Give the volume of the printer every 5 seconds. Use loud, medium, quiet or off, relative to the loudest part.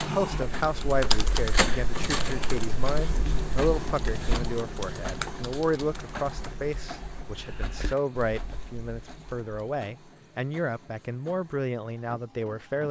loud, medium, quiet.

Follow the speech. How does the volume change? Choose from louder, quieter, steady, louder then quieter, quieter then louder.
steady.